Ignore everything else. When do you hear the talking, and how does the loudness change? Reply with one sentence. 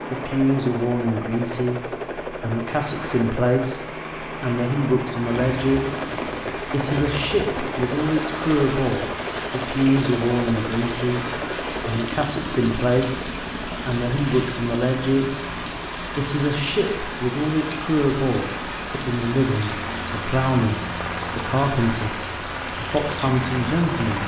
The talking can be heard from 0.1 to 24.2 s, at a steady volume.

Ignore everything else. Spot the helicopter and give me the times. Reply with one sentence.
The helicopter can be heard from 0.0 to 24.2 s.